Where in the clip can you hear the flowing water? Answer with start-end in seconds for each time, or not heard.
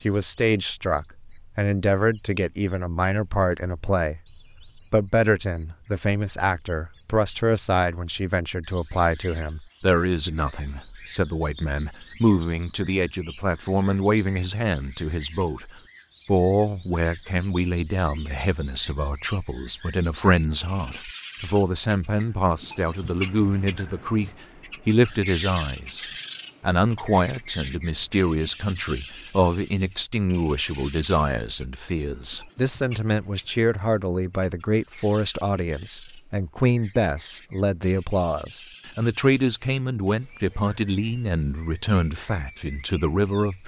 not heard.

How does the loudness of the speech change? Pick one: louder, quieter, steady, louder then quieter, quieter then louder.
steady.